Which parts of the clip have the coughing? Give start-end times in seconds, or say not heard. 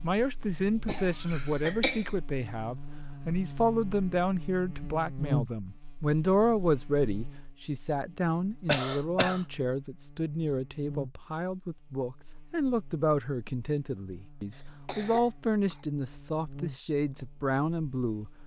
0.8-2.1, 8.7-9.4, 14.5-15.8.